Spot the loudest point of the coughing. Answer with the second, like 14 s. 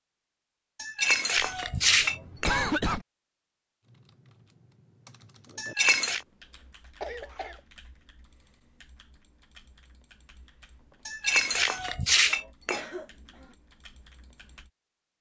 3 s.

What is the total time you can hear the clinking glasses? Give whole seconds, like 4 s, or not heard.
4 s.